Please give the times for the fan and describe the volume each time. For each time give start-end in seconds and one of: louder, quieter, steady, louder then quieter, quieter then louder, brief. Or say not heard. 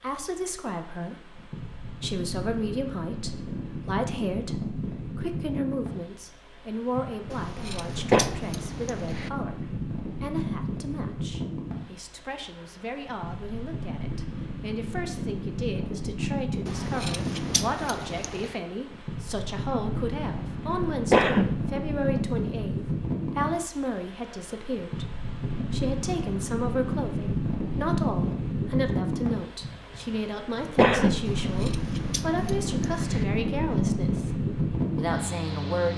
0.0-35.9 louder.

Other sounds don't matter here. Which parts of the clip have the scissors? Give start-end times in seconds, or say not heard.
7.3-9.3, 16.6-18.6, 31.2-33.2.